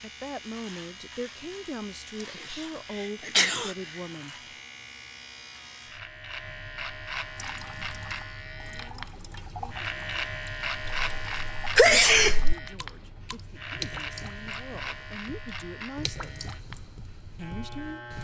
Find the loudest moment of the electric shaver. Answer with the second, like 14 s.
11 s.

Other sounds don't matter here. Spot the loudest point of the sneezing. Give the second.
12 s.